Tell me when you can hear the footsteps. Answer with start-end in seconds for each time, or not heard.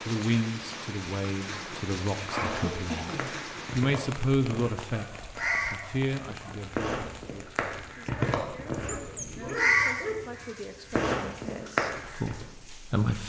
not heard.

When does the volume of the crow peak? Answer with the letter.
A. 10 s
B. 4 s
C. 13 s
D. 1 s
A.